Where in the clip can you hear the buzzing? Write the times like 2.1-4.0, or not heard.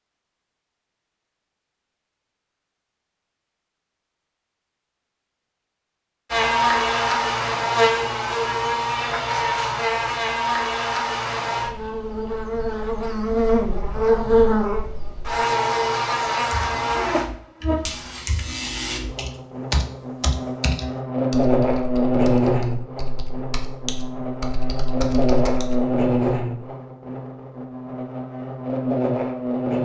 6.3-29.8.